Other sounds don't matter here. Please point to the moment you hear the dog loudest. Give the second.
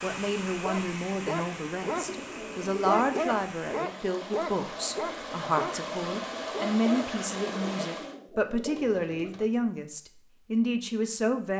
3 s.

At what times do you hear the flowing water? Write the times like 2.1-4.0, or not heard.
0.0-8.2.